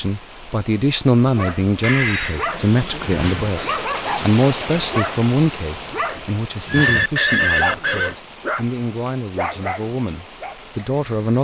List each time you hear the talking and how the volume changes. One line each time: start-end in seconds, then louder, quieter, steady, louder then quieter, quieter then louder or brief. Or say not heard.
0.0-11.3 quieter.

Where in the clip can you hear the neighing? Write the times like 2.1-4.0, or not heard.
1.8-3.3, 6.7-8.2.